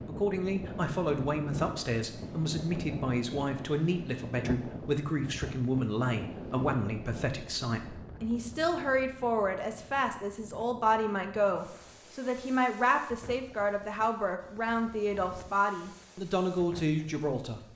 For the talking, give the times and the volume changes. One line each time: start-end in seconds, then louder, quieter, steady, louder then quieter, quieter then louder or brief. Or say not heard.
0.1-17.6 steady.